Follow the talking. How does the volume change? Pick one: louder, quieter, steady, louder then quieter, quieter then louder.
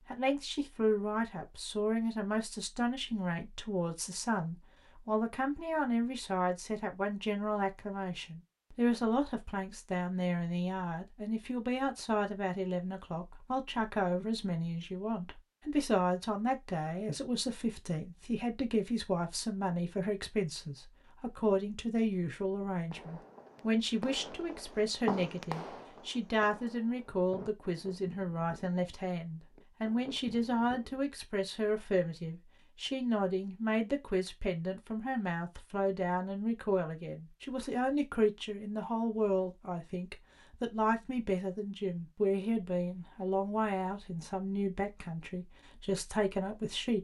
steady.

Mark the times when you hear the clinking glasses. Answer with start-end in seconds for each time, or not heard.
not heard.